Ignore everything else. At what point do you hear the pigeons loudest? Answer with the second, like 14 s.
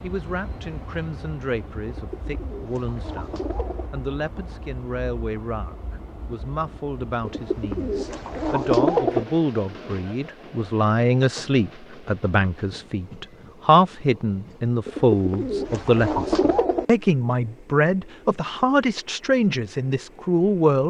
9 s.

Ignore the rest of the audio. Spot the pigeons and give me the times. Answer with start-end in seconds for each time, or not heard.
1.9-3.9, 7.2-9.2, 14.8-16.9.